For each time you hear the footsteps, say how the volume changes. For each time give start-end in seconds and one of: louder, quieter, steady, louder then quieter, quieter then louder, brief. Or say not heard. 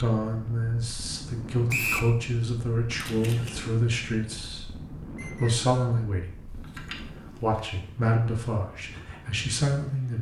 not heard.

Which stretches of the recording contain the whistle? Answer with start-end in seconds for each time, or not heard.
1.7-2.1, 5.2-6.0.